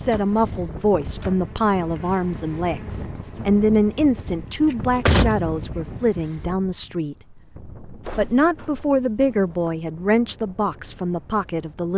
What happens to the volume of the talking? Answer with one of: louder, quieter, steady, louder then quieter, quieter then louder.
steady.